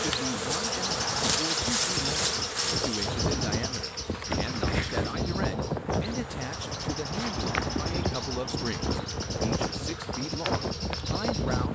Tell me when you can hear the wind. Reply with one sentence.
You can hear the wind from 0.0 to 11.6 s.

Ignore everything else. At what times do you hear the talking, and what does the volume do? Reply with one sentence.
You can hear the talking from 0.0 to 11.6 s, at a steady volume.